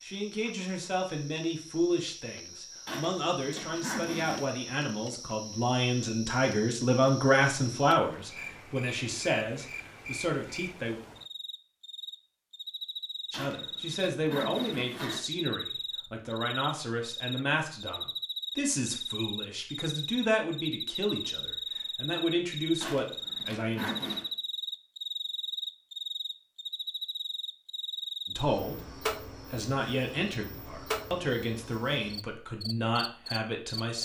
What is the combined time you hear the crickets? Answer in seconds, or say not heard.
34 s.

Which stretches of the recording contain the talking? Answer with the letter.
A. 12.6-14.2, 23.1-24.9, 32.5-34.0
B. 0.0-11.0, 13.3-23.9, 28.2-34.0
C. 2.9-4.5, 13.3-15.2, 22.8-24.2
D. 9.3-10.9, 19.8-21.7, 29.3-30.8
B.